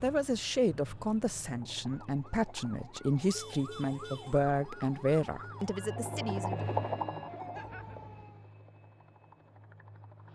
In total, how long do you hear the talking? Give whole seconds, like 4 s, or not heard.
7 s.